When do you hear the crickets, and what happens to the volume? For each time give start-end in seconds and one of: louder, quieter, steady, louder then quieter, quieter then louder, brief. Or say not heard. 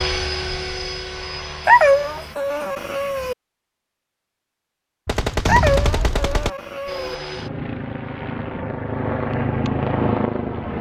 not heard.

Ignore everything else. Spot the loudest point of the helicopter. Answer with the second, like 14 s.
10 s.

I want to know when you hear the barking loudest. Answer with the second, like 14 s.
2 s.